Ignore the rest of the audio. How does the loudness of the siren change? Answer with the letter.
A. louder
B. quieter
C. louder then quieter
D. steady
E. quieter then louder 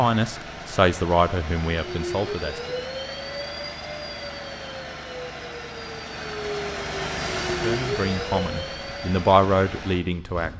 E.